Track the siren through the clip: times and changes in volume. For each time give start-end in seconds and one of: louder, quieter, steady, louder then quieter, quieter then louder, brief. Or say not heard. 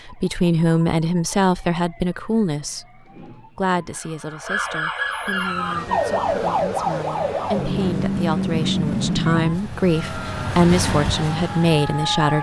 0.0-12.3 louder then quieter.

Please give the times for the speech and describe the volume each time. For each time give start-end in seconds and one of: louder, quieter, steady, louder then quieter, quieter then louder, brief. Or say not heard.
0.1-12.3 quieter then louder.